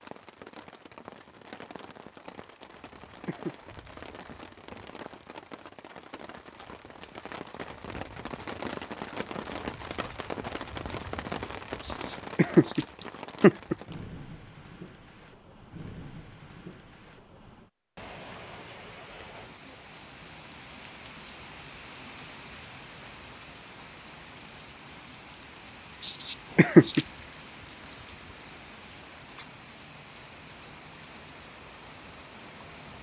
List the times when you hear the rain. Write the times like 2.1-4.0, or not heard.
0.0-32.9.